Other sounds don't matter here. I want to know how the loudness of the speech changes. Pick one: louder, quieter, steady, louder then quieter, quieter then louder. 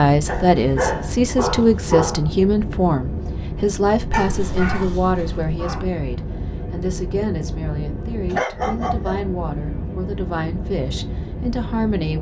quieter.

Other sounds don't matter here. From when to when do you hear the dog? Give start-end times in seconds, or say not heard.
0.2-2.2, 4.1-5.8, 8.3-9.2.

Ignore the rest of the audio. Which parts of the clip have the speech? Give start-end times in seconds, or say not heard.
0.0-12.1.